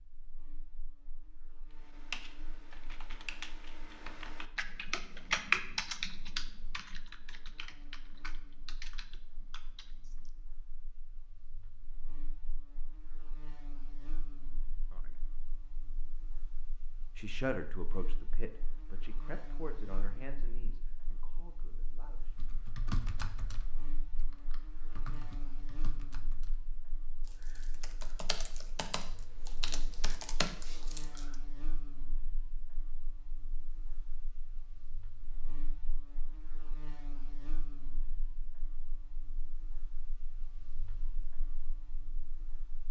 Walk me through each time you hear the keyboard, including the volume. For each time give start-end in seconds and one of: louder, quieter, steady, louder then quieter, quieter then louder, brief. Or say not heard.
1.7-10.3 louder then quieter
22.4-31.4 quieter then louder.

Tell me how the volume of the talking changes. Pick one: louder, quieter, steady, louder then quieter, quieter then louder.
quieter.